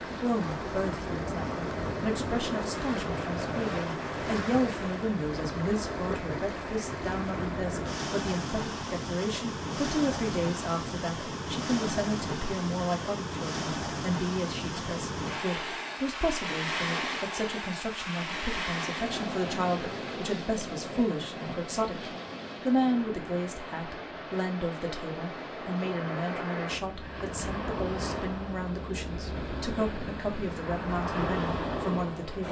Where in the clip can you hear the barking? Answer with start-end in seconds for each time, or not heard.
not heard.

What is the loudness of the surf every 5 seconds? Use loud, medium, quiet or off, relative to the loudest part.
loud, loud, loud, loud, medium, loud, loud.